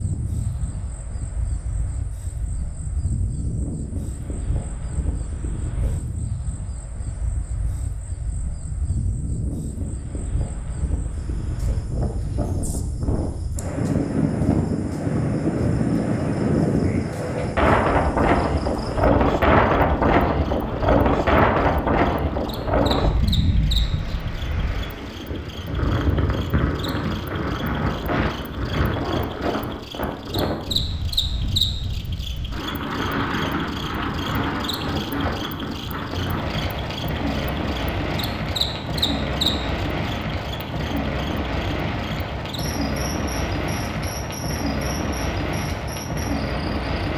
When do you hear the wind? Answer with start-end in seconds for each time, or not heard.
0.0-47.1.